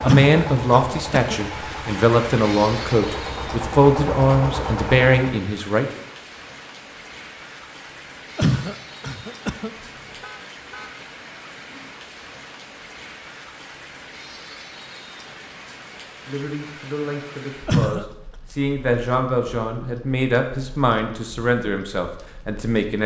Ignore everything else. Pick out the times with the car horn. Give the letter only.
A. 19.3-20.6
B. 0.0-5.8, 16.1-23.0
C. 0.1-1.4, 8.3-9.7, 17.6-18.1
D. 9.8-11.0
D.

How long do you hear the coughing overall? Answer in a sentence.
You can hear the coughing for 3 seconds altogether.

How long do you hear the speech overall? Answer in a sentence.
The speech can be heard for 13 seconds in total.